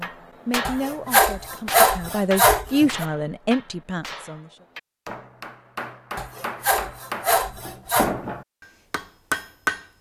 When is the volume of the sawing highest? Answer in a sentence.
The volume of the sawing peaks at 2 seconds.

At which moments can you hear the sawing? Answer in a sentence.
The sawing can be heard from 0.7 to 3.0 s and from 6.2 to 8.2 s.